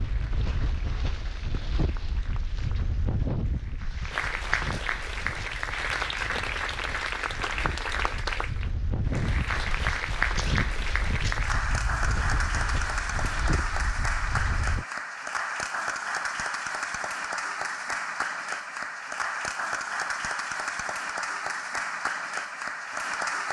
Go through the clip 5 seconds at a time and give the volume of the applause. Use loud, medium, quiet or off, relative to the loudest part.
medium, loud, loud, loud, loud.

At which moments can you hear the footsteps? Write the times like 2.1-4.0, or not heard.
not heard.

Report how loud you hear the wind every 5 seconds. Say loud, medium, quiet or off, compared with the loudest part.
loud, loud, loud, off, off.